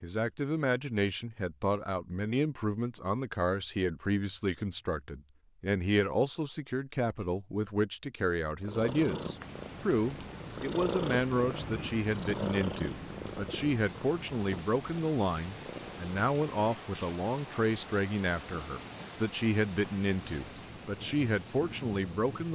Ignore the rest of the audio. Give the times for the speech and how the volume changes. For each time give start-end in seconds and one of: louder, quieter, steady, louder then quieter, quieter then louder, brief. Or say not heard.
0.0-22.5 steady.